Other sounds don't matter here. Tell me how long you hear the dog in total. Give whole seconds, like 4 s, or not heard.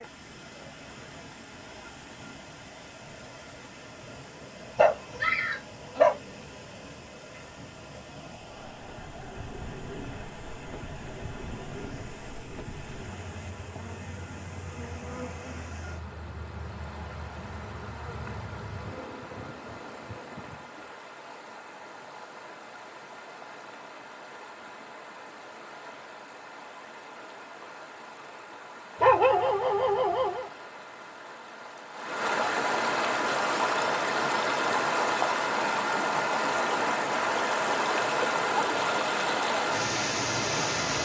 3 s.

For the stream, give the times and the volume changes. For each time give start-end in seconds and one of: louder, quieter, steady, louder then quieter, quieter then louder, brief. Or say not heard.
0.0-41.0 louder.